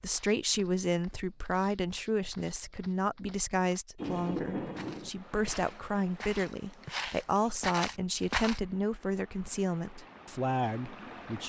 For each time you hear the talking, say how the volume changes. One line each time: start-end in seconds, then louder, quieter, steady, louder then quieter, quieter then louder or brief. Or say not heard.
0.0-11.4 steady.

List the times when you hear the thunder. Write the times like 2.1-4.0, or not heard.
4.0-5.1.